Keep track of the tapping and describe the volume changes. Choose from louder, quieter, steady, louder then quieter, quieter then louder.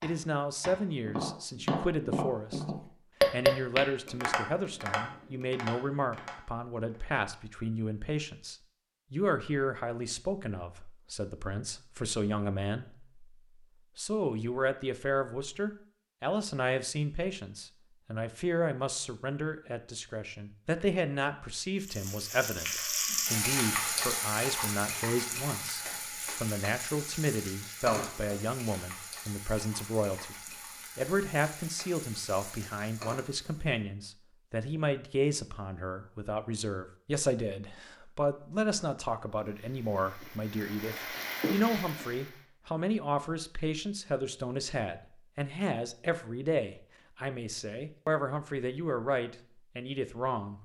louder then quieter.